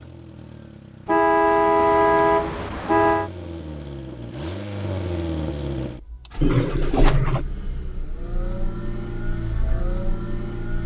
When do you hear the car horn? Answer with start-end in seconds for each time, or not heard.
1.1-3.3, 6.4-7.5.